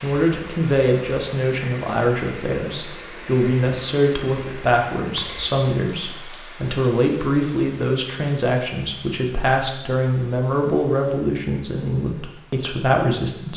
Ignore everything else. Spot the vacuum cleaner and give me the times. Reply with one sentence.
You can't hear the vacuum cleaner here.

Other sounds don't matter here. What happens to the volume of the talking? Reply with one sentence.
The volume of the talking stays about the same.